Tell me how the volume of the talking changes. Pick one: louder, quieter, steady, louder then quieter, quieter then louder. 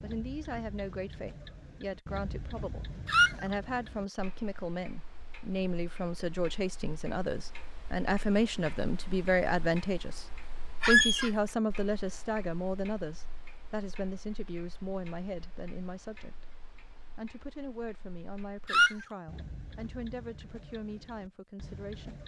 louder then quieter.